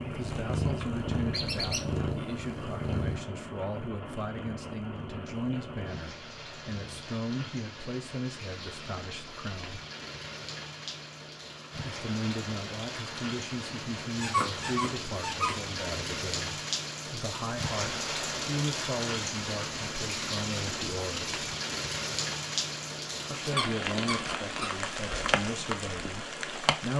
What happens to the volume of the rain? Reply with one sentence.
The loudness of the rain goes up.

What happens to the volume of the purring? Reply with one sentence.
The volume of the purring goes down.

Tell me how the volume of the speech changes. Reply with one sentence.
The volume of the speech stays about the same.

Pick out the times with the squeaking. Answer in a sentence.
The squeaking can be heard from 1.3 to 1.9 s, from 14.2 to 15.8 s and from 23.4 to 24.7 s.